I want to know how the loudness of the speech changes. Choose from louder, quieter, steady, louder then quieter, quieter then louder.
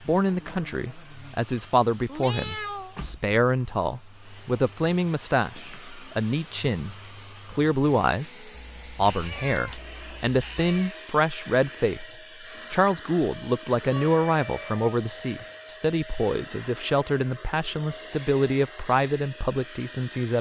steady.